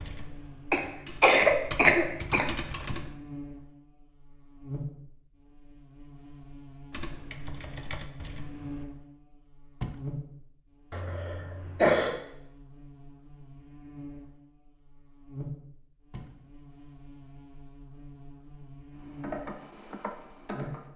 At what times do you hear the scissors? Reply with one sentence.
You can't hear the scissors here.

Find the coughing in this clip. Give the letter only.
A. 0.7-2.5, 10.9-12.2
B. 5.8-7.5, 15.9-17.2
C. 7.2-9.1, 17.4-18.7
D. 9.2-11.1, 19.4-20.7
A.